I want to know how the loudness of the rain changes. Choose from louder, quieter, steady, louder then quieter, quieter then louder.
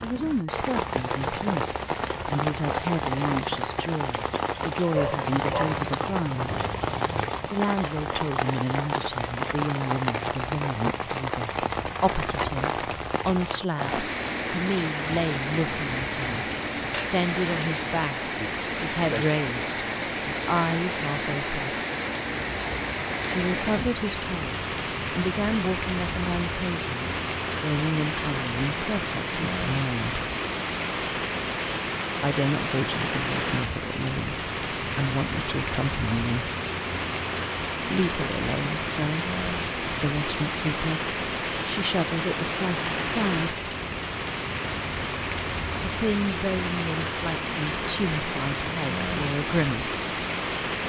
steady.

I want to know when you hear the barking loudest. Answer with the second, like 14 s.
5 s.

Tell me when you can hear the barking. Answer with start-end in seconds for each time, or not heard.
4.9-7.3.